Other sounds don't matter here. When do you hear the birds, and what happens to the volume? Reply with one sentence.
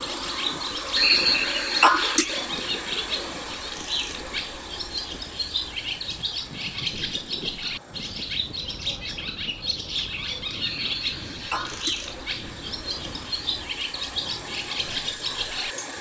The birds can be heard from 0.0 to 15.9 s, at a steady volume.